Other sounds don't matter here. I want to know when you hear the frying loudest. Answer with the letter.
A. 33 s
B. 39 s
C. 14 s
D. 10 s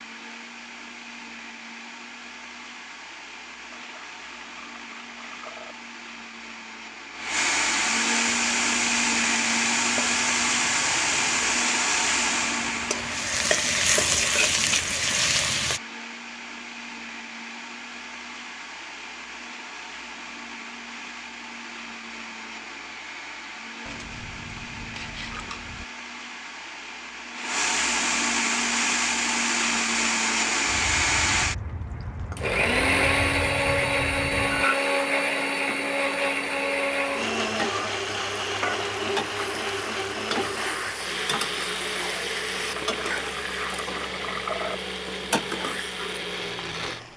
C.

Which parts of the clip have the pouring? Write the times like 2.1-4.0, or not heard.
3.8-5.8, 23.9-25.9, 42.8-44.8.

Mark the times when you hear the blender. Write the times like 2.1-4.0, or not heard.
0.0-47.0.